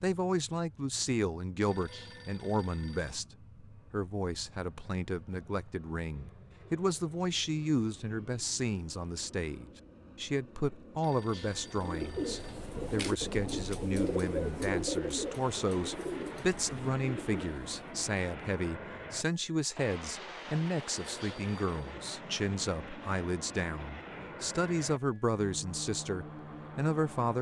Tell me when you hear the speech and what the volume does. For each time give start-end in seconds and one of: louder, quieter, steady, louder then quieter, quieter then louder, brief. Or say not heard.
0.0-27.3 steady.